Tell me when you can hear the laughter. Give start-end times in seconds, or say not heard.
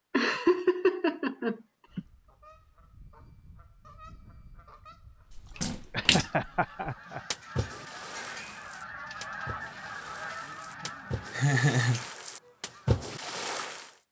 0.1-2.0, 5.9-7.2, 11.3-12.1.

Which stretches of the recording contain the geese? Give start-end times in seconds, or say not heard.
1.9-13.0.